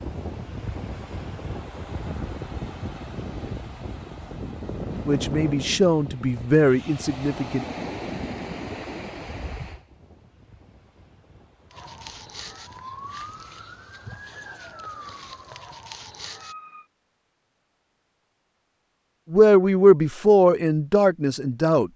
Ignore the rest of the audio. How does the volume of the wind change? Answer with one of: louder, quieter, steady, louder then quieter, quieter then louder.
quieter.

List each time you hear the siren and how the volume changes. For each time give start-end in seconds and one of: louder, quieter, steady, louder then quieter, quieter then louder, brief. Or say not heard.
11.7-16.9 steady.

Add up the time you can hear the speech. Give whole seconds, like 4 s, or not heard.
5 s.